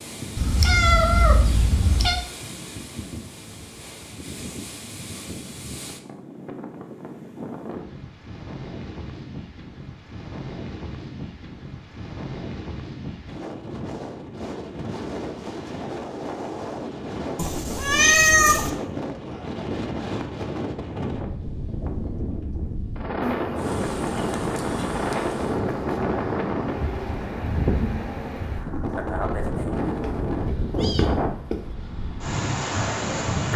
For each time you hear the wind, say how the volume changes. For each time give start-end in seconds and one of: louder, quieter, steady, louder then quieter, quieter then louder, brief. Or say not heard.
0.0-33.5 louder.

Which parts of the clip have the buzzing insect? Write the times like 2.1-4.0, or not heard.
23.2-28.4.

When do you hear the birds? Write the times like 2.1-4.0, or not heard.
not heard.